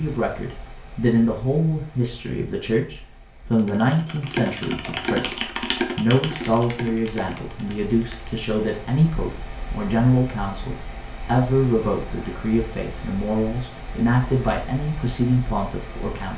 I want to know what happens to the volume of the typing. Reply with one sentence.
The loudness of the typing goes down.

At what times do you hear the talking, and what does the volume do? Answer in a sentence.
You can hear the talking from 0.0 to 16.3 s, at a steady volume.